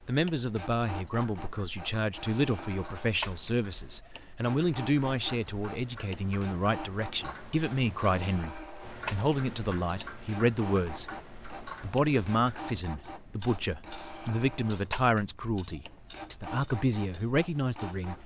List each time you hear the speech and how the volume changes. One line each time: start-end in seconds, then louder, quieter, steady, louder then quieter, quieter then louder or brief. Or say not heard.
0.0-18.2 steady.